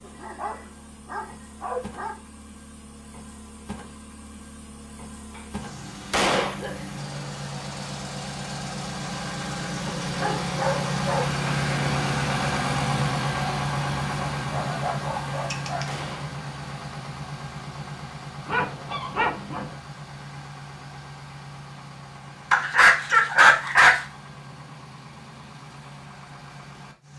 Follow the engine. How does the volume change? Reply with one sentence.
The volume of the engine goes up, then down.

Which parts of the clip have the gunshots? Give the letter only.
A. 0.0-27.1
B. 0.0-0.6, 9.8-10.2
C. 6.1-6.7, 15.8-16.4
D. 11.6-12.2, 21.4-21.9
C.